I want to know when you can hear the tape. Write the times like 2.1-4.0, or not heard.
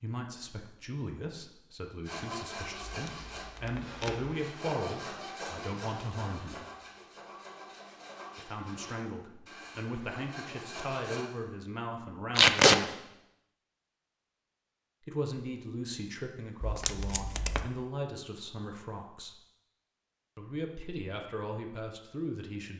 2.9-4.3, 12.3-12.8, 16.6-17.7.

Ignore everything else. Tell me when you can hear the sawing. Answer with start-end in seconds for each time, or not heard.
2.0-11.2.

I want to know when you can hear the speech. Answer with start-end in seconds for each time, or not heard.
0.0-6.7, 8.3-12.9, 15.0-19.4, 20.4-22.7.